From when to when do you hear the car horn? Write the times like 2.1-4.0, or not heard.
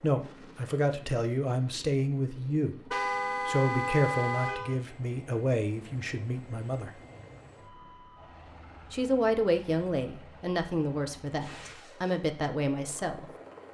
2.9-4.8.